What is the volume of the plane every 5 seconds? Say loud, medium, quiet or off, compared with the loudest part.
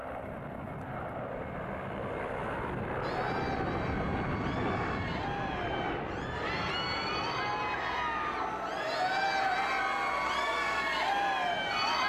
loud, loud, medium.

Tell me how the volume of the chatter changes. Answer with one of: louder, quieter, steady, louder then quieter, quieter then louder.
louder.